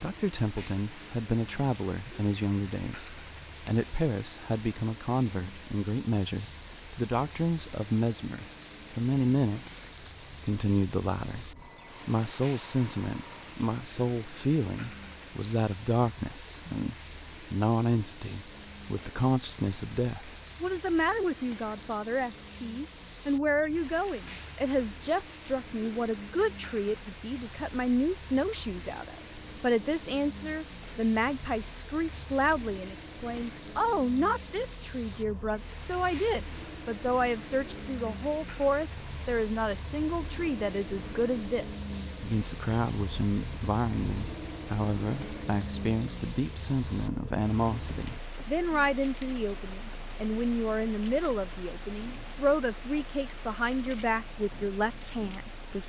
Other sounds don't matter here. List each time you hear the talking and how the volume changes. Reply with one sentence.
You can hear the talking from 0.0 to 55.8 s, at a steady volume.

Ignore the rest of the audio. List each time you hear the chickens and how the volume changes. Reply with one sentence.
The chickens can't be heard in this clip.